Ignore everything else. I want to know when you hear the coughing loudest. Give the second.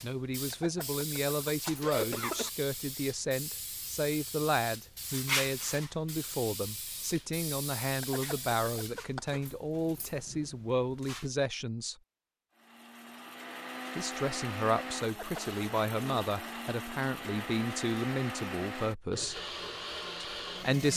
2 s.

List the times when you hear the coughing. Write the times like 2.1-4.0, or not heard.
0.5-2.5, 8.0-9.4, 15.1-15.6.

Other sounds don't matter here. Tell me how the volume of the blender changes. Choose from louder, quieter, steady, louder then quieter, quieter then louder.
steady.